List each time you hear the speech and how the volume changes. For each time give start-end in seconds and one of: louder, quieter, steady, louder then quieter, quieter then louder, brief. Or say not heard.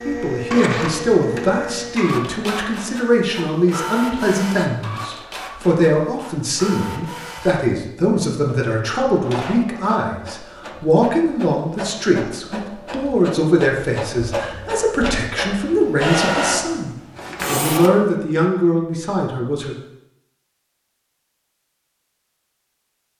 0.1-19.8 steady.